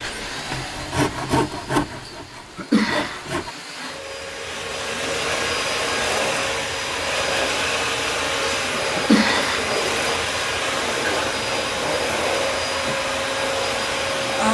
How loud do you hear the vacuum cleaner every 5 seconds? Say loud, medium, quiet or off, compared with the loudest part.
medium, loud, loud.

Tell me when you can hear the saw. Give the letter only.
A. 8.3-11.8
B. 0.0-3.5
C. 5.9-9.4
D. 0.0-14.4
B.